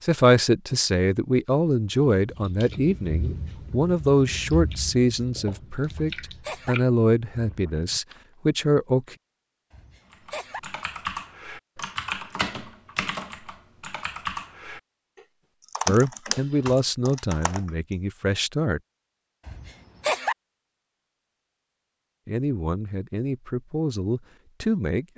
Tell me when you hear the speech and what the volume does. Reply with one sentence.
You can hear the speech from 0.0 to 9.2 s, at a steady volume; briefly from 15.8 to 18.8 s; and briefly from 22.2 to 25.1 s.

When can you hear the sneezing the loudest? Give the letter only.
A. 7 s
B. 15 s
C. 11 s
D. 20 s
D.